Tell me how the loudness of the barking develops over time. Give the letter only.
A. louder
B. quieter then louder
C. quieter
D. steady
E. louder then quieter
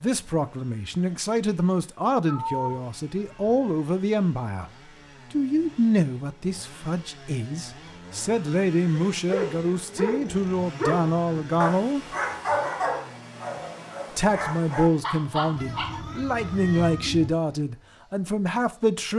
B.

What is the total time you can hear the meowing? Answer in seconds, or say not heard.
3 s.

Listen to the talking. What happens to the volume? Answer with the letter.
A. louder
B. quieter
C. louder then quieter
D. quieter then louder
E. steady
E.